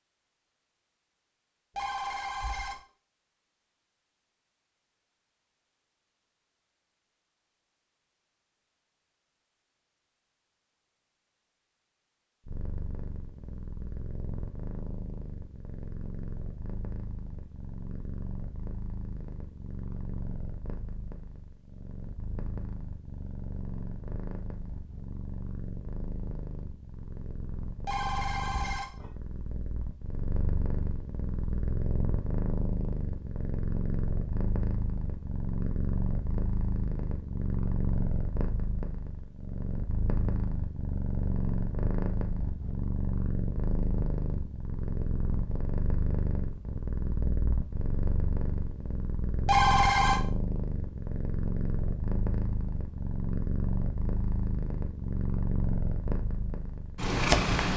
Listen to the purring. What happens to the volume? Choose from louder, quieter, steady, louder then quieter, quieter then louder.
louder.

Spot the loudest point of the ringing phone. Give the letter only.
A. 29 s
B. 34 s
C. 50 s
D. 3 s
C.